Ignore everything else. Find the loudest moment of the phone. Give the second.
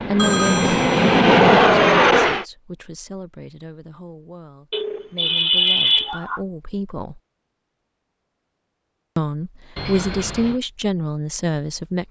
6 s.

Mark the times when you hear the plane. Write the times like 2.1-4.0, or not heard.
0.0-2.5.